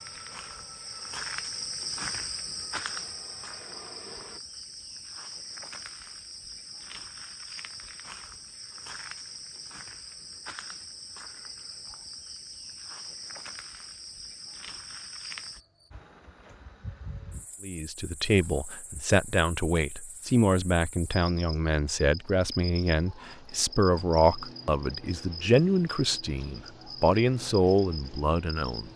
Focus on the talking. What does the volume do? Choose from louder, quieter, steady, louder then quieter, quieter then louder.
steady.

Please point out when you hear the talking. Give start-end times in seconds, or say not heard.
17.6-28.9.